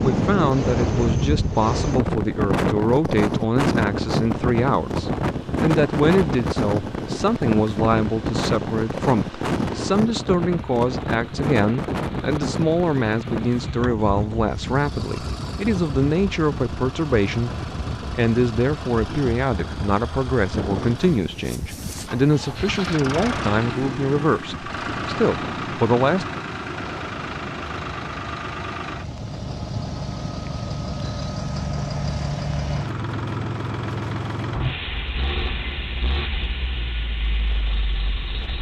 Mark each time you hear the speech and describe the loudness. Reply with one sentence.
The speech can be heard from 0.0 to 17.5 s, at a steady volume; and from 18.1 to 26.2 s, at a steady volume.